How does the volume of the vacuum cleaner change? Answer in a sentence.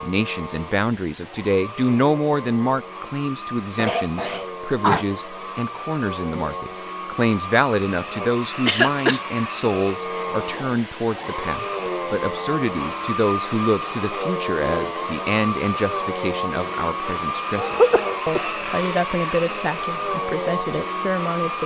The loudness of the vacuum cleaner goes up.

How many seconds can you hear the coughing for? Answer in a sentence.
The coughing can be heard for 3 seconds in total.